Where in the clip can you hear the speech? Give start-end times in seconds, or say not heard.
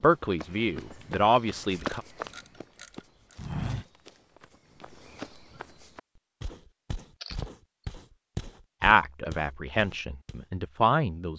0.0-2.0, 8.8-11.3.